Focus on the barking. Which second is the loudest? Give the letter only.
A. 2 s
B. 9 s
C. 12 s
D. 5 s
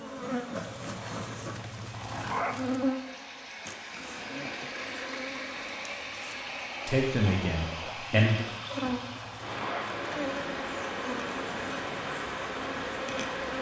A.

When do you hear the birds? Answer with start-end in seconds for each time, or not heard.
not heard.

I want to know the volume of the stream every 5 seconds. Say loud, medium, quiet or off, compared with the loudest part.
medium, loud, loud.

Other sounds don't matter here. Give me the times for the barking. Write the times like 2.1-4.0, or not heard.
0.6-3.0, 7.8-10.1.